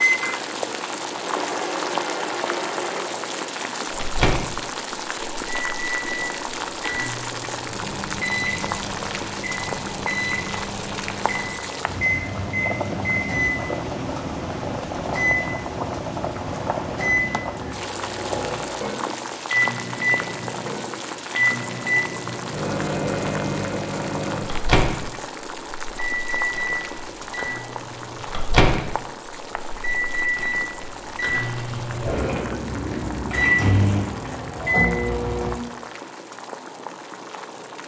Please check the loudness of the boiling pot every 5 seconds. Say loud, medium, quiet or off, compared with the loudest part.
loud, loud, loud, loud, loud, medium, medium, medium.